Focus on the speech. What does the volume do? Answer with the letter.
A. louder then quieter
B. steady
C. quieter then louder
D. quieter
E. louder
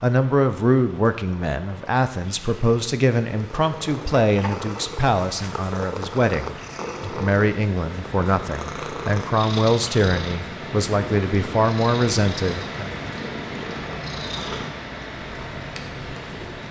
B.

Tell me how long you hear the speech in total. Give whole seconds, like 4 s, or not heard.
13 s.